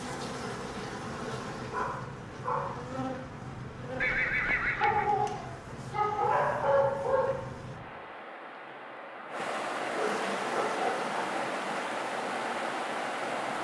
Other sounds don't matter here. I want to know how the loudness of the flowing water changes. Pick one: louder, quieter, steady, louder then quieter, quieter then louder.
louder.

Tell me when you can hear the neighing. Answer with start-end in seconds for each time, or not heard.
4.0-5.2.